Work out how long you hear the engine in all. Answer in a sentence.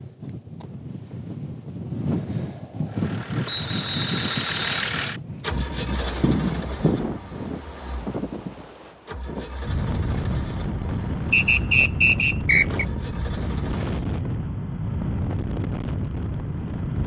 The engine can be heard for 11 seconds in total.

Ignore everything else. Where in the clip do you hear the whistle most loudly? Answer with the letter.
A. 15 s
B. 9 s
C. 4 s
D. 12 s
D.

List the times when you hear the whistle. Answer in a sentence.
The whistle can be heard from 3.5 to 5.0 s and from 11.3 to 12.8 s.